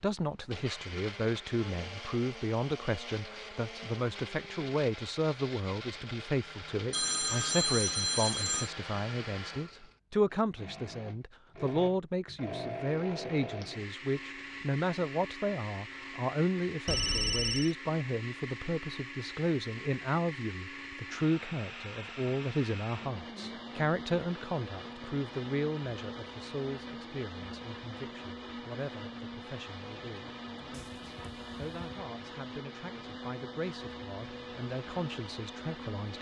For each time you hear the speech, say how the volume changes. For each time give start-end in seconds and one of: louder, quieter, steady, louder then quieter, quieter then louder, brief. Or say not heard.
0.0-36.1 quieter.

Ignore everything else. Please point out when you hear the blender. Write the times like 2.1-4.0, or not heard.
0.2-36.1.